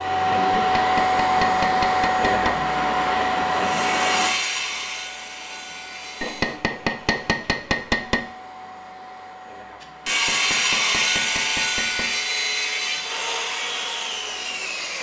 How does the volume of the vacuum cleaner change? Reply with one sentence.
The loudness of the vacuum cleaner goes down.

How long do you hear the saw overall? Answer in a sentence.
The saw can be heard for 8 seconds in total.